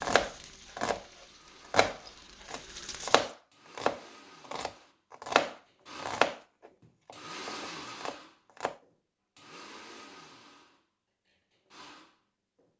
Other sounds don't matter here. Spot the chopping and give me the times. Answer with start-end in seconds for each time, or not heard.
0.0-1.0, 1.7-8.8.